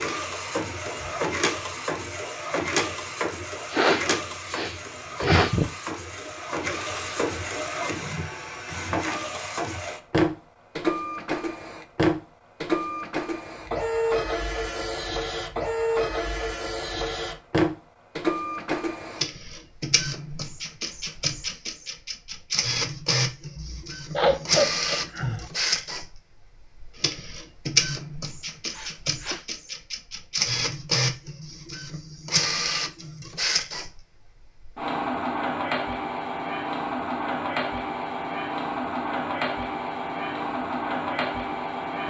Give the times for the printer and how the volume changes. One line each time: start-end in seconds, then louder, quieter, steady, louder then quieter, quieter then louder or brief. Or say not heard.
0.0-42.0 steady.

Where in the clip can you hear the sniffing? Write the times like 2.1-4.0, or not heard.
3.6-5.5, 23.6-25.4, 28.7-29.4.